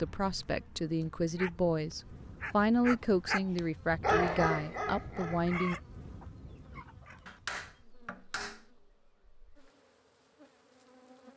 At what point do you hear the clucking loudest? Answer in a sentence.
The loudest moment of the clucking is at 6 seconds.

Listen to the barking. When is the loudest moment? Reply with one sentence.
The loudest moment of the barking is at 4 seconds.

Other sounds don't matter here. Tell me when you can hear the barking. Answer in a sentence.
The barking can be heard from 0.0 to 5.6 s.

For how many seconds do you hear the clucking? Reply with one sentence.
You can hear the clucking for 2 seconds altogether.